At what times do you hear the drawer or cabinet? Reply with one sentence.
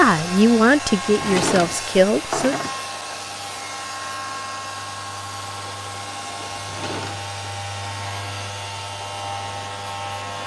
You can hear the drawer or cabinet from 1.1 to 2.8 s and from 6.5 to 7.3 s.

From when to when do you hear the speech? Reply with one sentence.
You can hear the speech from 0.0 to 2.6 s.